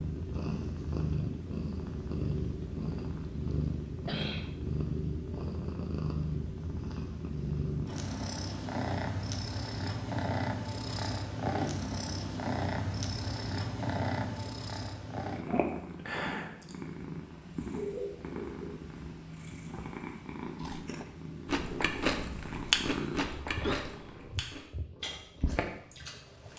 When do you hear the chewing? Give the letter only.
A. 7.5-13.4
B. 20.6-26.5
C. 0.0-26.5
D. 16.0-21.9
B.